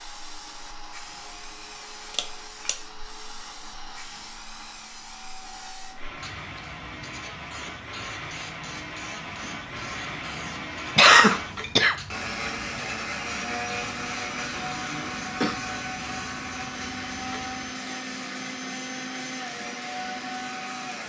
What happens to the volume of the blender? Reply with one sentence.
The loudness of the blender goes up.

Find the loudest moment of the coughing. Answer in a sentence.
The loudest moment of the coughing is at 11 seconds.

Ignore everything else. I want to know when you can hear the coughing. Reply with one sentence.
The coughing can be heard from 2.1 to 2.8 s, from 10.9 to 11.9 s and from 14.5 to 15.6 s.